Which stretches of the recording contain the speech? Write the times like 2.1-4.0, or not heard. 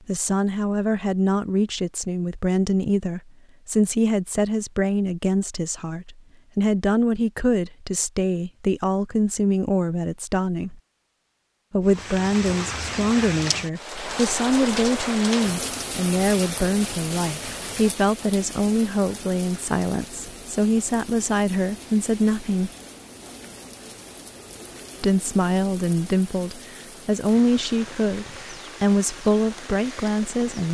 0.1-10.8, 11.7-22.7, 25.0-30.6.